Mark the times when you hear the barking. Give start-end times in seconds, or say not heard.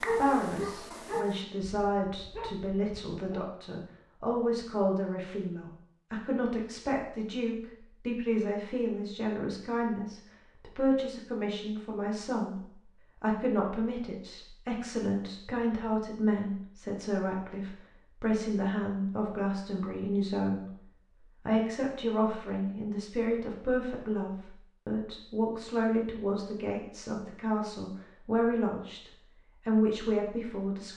0.0-3.5.